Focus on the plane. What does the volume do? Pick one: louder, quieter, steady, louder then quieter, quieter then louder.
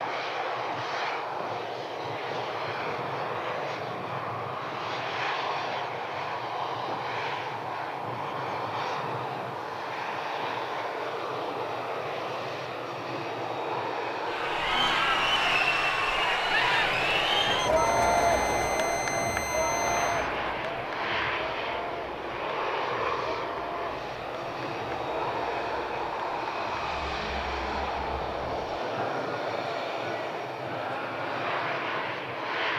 steady.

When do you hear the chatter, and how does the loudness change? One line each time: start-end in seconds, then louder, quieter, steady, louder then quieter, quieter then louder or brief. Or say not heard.
14.2-32.7 quieter.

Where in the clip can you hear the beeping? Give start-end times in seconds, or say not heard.
17.6-20.3.